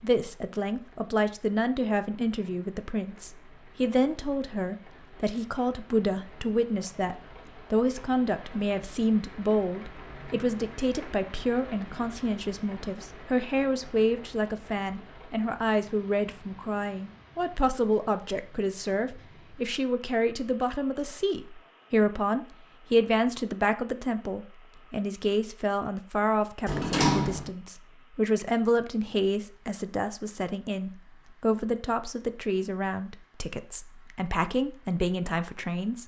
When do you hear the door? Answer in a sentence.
You can hear the door from 26.6 to 27.5 s.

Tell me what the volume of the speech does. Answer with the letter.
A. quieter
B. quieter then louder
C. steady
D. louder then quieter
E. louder
C.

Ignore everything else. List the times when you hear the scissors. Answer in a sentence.
The scissors can't be heard in this clip.